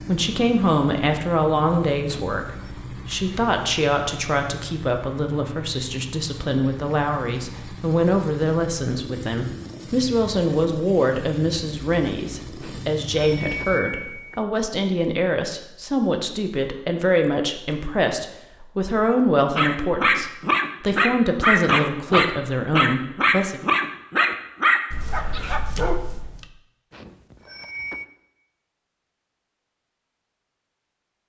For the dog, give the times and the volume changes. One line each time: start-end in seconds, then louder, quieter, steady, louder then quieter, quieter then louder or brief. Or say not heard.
19.5-26.4 quieter.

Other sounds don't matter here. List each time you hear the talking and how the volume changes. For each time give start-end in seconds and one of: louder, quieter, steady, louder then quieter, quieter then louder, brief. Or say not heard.
0.1-23.6 steady.